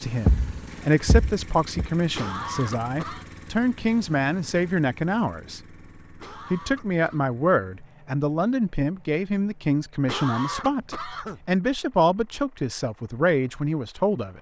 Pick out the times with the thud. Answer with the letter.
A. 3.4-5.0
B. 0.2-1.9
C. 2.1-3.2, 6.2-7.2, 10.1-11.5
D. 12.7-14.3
B.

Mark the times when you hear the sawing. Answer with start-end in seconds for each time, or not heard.
not heard.